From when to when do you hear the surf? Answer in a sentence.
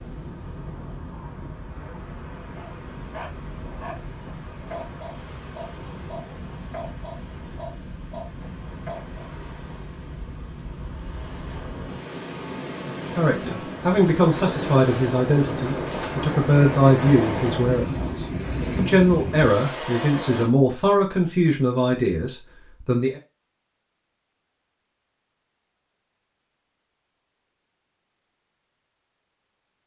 The surf can be heard from 0.0 to 20.5 s.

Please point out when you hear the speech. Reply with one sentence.
The speech can be heard from 13.2 to 23.2 s.